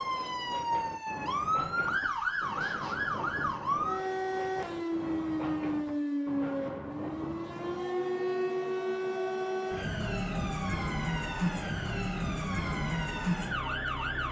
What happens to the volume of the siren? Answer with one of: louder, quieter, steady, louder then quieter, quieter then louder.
steady.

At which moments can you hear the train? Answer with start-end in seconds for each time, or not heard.
0.0-14.2.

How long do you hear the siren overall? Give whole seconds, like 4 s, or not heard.
14 s.